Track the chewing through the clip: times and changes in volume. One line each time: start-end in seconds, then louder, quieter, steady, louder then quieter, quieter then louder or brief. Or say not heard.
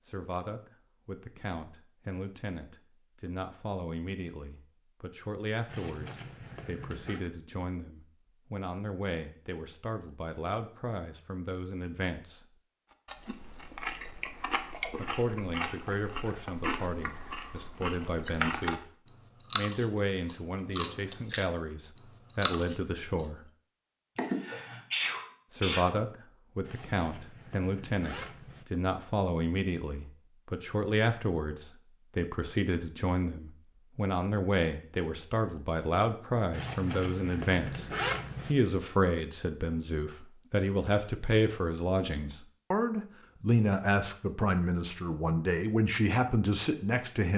13.1-23.2 steady.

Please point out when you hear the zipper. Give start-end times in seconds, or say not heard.
5.7-7.2, 26.6-28.6, 36.5-38.5.